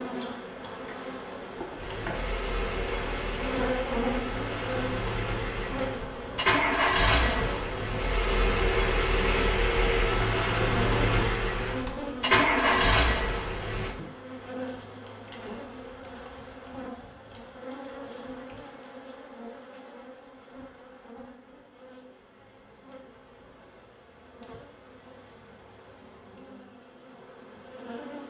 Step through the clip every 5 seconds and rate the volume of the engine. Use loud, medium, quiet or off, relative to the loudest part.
medium, loud, loud, off, off, off.